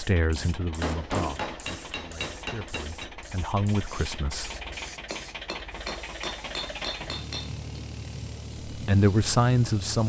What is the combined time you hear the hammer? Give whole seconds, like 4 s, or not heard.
5 s.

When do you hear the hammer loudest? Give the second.
1 s.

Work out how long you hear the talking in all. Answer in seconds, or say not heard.
6 s.